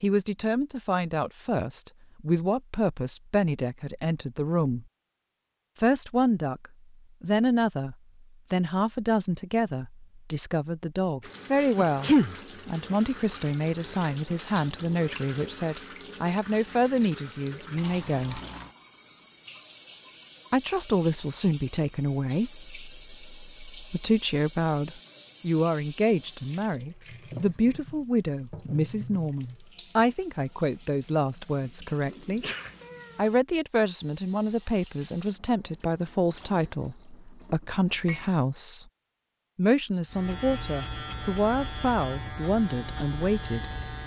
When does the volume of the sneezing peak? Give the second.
12 s.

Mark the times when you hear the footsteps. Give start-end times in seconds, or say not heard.
not heard.